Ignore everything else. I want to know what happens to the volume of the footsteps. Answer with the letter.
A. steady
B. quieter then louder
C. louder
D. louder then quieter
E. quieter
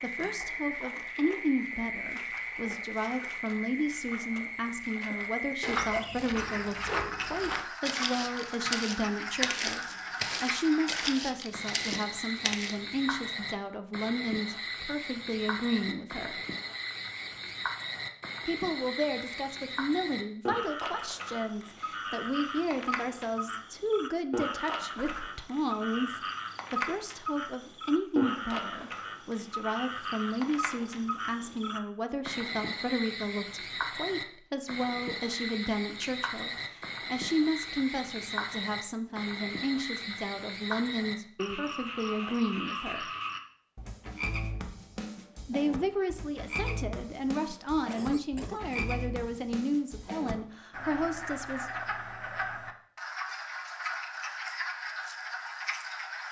A.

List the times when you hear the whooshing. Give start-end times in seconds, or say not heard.
24.9-25.4.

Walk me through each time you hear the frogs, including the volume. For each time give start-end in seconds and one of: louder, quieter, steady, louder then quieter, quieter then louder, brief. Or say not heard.
0.0-56.2 steady.